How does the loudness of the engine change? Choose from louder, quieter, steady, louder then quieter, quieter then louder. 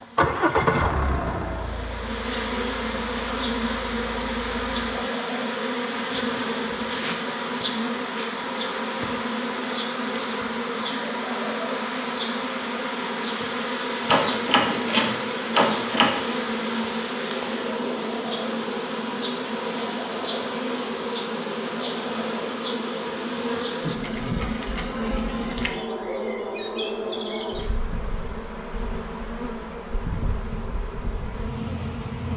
quieter.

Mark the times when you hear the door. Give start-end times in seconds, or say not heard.
14.1-16.1.